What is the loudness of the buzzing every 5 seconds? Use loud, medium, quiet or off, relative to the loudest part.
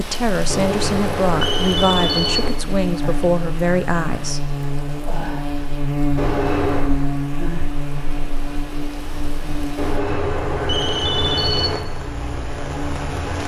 loud, loud, medium.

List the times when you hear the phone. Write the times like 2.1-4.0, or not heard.
0.5-2.5, 6.2-6.9, 9.8-11.8.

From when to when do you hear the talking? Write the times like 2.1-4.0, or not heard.
0.0-4.4.